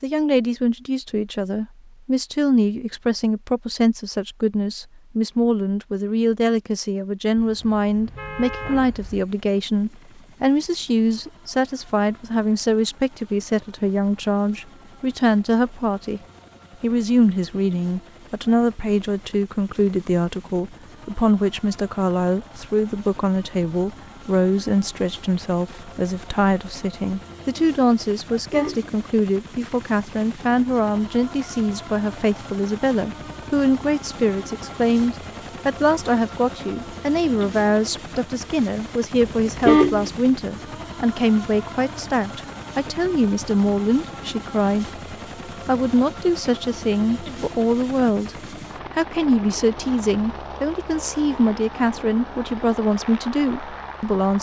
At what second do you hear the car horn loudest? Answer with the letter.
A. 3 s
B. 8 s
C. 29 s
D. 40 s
D.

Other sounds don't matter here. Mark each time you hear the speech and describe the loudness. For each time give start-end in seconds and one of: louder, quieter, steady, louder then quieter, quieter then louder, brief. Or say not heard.
0.0-16.2 steady
16.8-54.3 steady.